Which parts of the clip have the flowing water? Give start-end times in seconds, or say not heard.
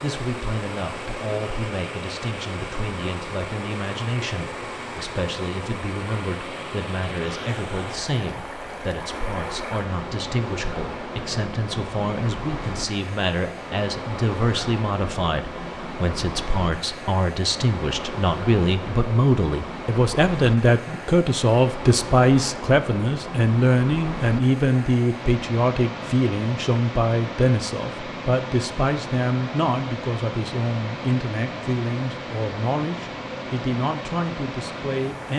0.0-35.3.